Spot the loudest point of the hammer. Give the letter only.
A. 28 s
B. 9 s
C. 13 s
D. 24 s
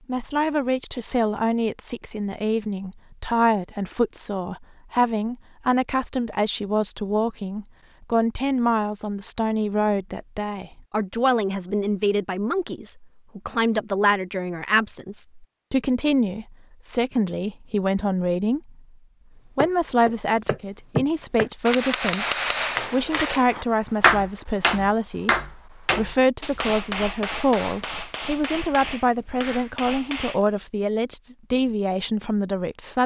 D.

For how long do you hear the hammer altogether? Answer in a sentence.
The hammer can be heard for 11 seconds in total.